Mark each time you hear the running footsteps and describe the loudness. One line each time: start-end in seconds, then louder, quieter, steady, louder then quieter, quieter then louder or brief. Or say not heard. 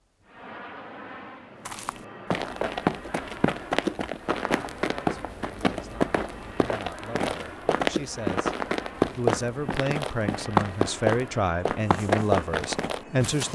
1.6-13.5 steady.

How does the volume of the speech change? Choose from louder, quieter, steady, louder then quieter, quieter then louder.
louder.